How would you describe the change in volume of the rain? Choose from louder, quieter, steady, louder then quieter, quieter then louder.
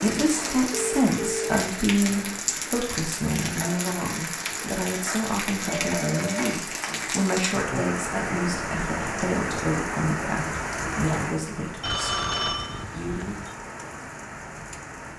quieter.